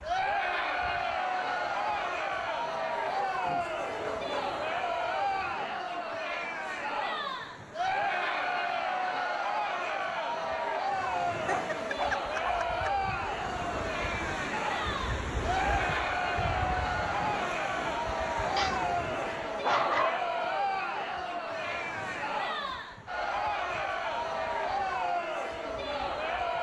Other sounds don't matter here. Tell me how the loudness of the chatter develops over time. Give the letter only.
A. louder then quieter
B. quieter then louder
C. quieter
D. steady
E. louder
D.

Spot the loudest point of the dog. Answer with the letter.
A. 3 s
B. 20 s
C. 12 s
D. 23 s
B.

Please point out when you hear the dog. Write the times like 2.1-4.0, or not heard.
2.5-4.6, 11.4-13.1, 18.6-20.3.